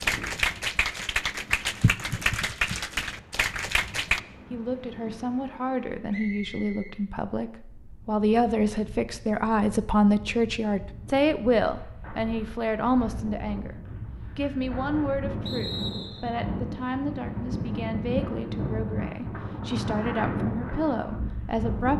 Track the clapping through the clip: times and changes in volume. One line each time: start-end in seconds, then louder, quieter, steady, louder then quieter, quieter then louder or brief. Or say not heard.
0.0-4.2 steady.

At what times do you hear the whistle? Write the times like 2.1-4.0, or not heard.
6.1-7.0, 15.4-16.3.